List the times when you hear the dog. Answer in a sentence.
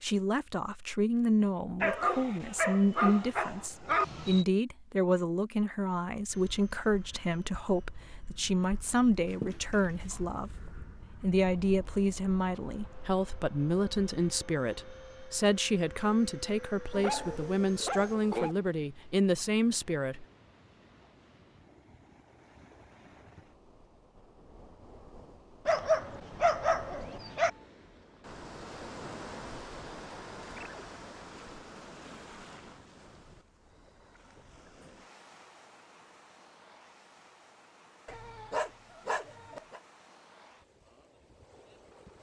The dog can be heard from 1.8 to 4.5 s, from 9.4 to 10.2 s, from 16.9 to 18.6 s, from 25.6 to 27.5 s and from 38.0 to 39.8 s.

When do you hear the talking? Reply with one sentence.
You can hear the talking from 0.0 to 20.2 s.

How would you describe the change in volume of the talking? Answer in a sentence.
The volume of the talking stays about the same.